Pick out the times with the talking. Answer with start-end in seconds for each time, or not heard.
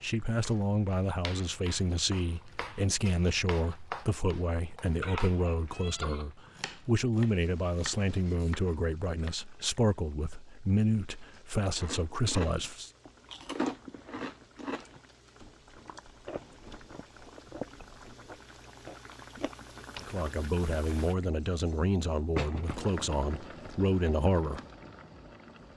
0.0-12.9, 20.0-24.6.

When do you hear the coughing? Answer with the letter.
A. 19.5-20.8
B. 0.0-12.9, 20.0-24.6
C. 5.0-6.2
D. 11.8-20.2
C.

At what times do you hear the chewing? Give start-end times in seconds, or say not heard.
11.8-20.2.